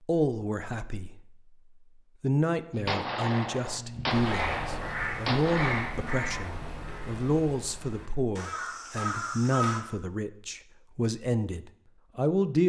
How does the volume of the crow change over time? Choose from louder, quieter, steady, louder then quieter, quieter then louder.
quieter then louder.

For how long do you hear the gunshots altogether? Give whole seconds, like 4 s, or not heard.
3 s.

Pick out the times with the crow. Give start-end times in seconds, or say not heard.
4.1-9.8.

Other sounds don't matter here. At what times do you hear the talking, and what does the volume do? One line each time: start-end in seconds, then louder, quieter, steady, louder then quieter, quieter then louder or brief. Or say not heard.
0.0-1.1 brief
2.2-12.6 steady.